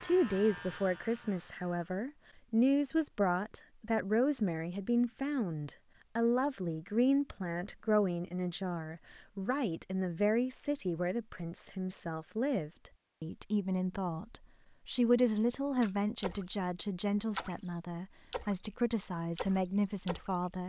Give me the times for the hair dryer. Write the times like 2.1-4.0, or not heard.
not heard.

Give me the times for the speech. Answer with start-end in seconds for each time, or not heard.
0.0-20.6.